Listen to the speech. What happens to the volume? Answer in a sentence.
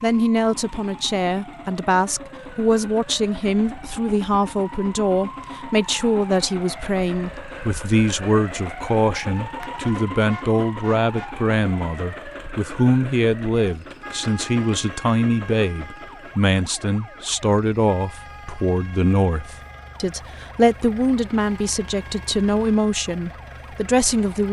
The volume of the speech stays about the same.